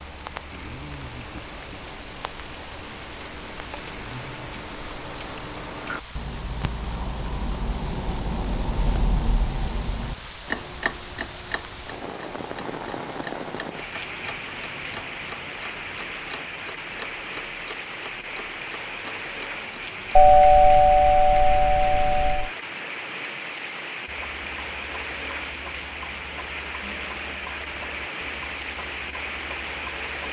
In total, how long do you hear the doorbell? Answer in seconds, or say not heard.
2 s.